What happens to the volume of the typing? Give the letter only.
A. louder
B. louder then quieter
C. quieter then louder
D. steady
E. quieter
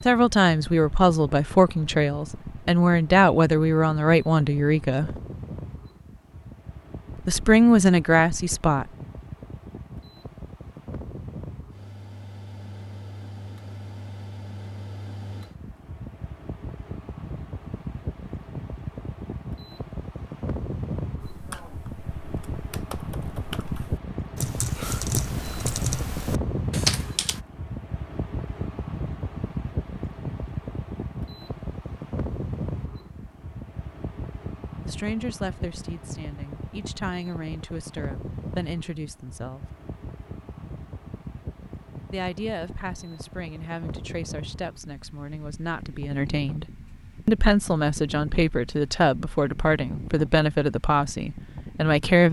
A.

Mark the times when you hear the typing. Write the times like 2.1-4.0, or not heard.
21.2-27.4.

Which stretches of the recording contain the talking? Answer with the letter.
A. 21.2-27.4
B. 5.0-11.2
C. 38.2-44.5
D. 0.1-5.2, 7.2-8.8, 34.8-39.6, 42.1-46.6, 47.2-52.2
D.